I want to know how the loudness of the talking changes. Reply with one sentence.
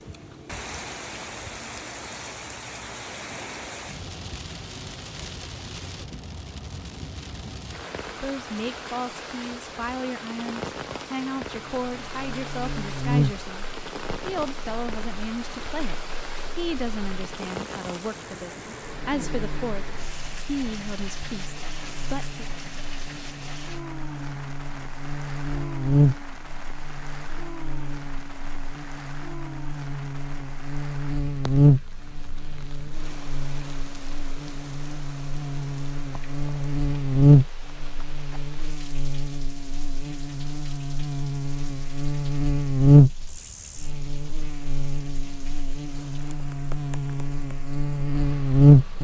The loudness of the talking stays about the same.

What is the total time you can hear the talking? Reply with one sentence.
You can hear the talking for 14 seconds altogether.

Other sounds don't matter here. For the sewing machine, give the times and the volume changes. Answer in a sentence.
The sewing machine can't be heard in this clip.